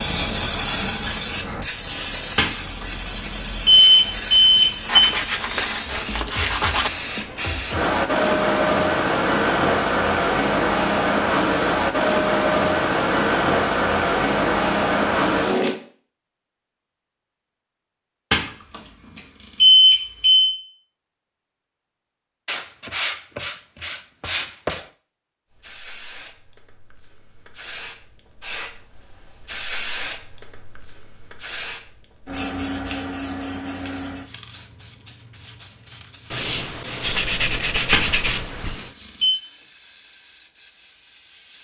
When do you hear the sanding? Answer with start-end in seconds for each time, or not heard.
4.8-6.9, 22.4-24.9, 36.3-38.9.